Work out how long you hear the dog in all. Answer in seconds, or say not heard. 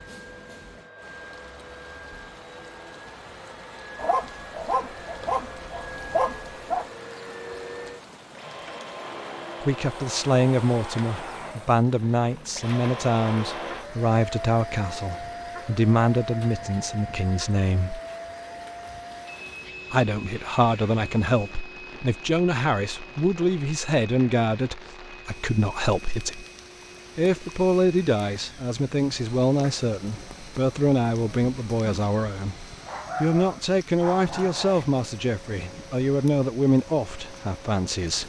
5 s.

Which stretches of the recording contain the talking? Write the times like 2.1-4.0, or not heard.
9.6-18.0, 19.9-26.4, 27.1-38.2.